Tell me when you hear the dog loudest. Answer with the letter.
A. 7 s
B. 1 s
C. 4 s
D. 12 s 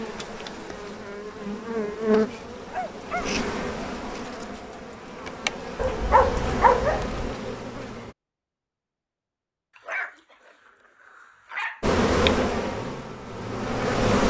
A.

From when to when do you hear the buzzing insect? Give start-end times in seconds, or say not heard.
0.0-8.2, 11.8-14.2.